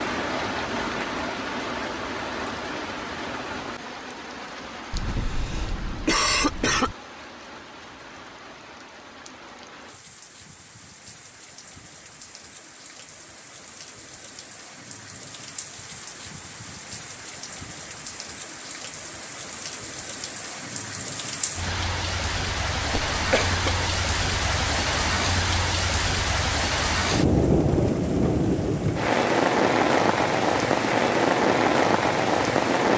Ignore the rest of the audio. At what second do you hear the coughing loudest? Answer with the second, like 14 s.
6 s.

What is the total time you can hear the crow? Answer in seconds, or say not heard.
not heard.